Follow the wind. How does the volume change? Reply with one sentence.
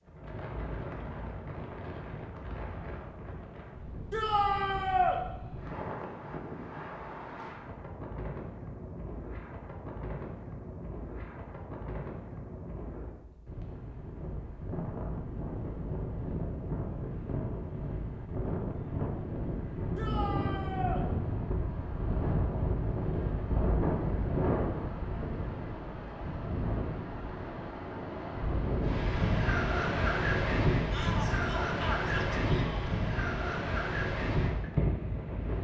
The loudness of the wind goes up.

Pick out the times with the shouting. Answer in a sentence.
You can hear the shouting from 4.1 to 5.2 s, from 19.9 to 21.1 s and from 30.9 to 32.9 s.